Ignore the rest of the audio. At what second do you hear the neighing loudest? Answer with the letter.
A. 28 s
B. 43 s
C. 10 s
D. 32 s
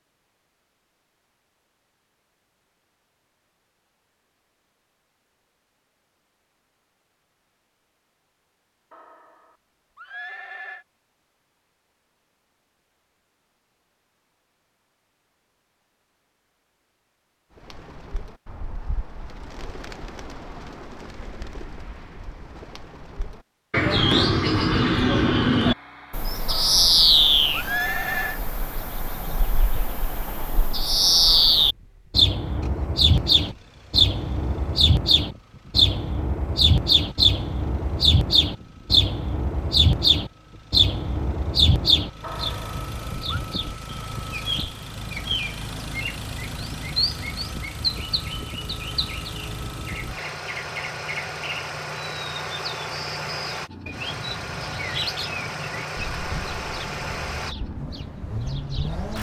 A.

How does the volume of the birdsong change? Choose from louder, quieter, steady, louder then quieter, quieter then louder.
louder then quieter.